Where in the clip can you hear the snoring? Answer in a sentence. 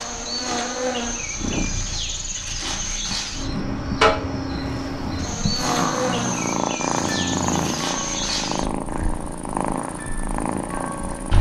You can hear the snoring from 5.5 to 7.9 s.